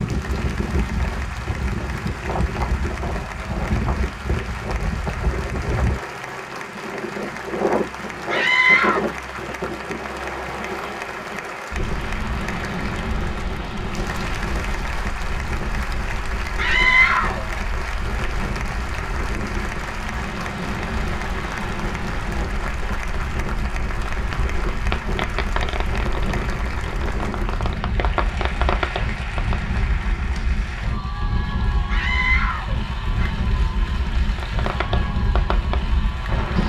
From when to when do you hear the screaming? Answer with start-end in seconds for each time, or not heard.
8.2-9.0, 16.6-17.4, 31.9-33.4.